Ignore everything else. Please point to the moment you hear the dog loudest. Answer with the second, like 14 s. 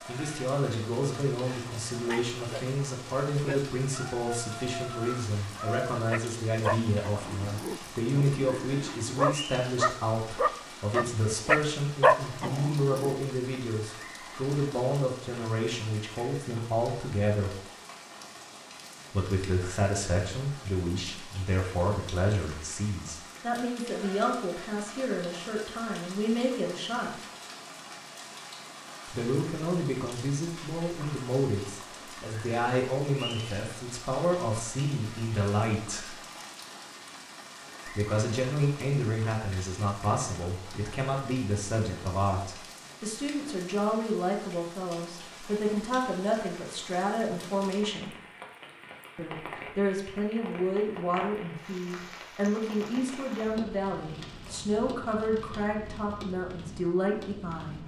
12 s.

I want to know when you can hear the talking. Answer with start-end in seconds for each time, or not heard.
0.1-17.6, 19.1-27.1, 29.1-36.1, 37.9-48.1, 49.1-57.8.